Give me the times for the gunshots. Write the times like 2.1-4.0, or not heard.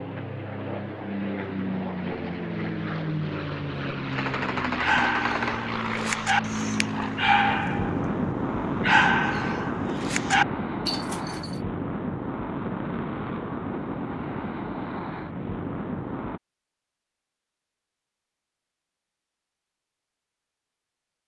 4.1-5.7.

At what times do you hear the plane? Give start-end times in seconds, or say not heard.
0.0-16.4.